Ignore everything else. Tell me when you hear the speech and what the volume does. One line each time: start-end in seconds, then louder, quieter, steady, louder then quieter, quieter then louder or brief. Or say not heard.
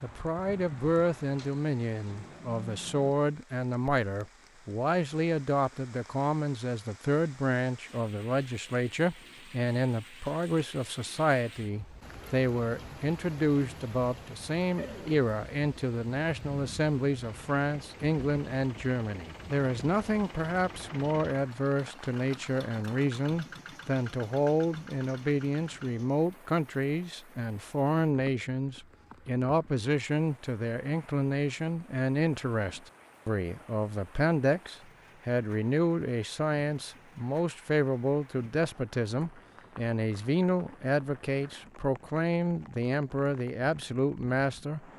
0.0-44.9 steady.